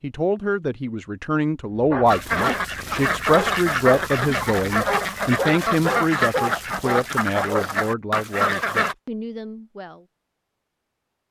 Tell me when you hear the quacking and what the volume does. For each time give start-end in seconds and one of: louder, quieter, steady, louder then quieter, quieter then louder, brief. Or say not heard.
2.0-8.9 steady.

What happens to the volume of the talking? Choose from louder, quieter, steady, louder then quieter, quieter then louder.
quieter.